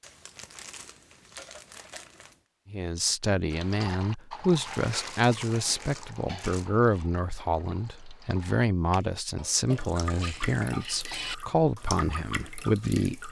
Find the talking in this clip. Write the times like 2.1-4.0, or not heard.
2.7-13.2.